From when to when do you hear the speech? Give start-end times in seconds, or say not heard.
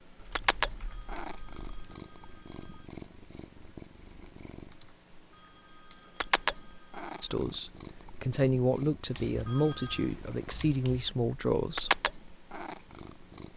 7.2-11.9.